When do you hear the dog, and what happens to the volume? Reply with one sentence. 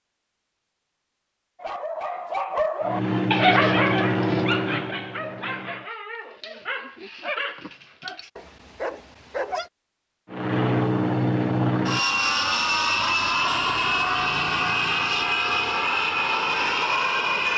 The dog can be heard from 1.6 to 9.7 s, getting quieter.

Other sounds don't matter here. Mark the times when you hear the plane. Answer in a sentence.
You can hear the plane from 2.8 to 5.9 s and from 10.3 to 17.5 s.